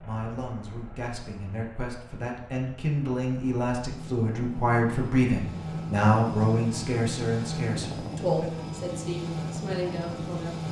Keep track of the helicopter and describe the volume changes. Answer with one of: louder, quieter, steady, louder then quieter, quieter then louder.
louder.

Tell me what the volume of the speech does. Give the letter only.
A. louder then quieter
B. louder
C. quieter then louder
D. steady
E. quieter
A.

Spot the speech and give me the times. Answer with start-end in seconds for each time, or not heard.
0.0-10.6.